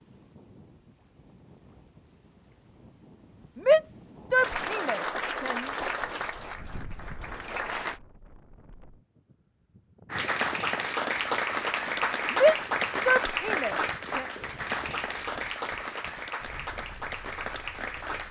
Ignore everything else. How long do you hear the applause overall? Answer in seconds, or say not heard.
12 s.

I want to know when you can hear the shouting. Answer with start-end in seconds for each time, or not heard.
3.5-5.7, 12.3-14.2.